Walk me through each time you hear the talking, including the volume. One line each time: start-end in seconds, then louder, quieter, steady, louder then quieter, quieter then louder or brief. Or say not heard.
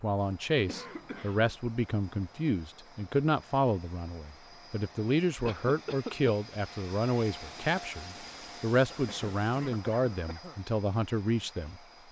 0.0-11.8 steady.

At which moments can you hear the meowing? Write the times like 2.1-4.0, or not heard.
not heard.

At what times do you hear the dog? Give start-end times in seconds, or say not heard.
not heard.